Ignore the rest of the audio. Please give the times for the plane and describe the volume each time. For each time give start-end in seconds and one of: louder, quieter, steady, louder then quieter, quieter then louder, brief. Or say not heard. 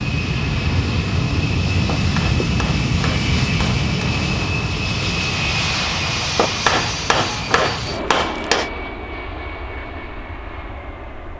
0.0-11.3 quieter.